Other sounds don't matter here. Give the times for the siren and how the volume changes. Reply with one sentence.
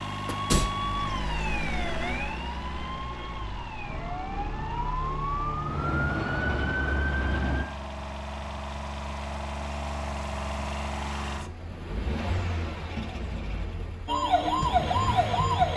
You can hear the siren from 0.0 to 7.7 s, getting quieter then louder; and briefly from 14.1 to 15.7 s.